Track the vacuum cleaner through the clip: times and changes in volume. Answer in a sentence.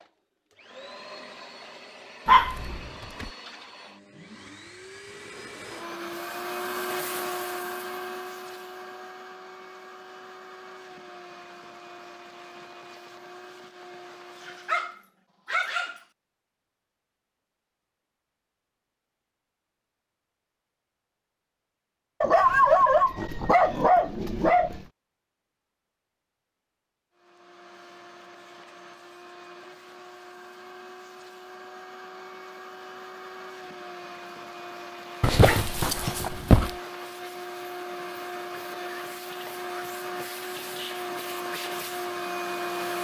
You can hear the vacuum cleaner from 0.0 to 15.1 s, getting louder then quieter; and from 27.1 to 42.9 s, getting louder.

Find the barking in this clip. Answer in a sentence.
You can hear the barking from 2.2 to 3.3 s, from 14.3 to 16.1 s, from 22.2 to 24.9 s and from 35.2 to 36.7 s.